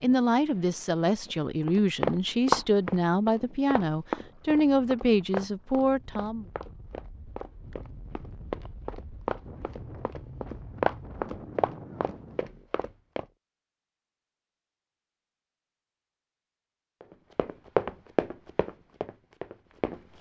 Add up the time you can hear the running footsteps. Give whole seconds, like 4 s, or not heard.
15 s.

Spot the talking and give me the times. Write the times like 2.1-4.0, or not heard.
0.0-6.5.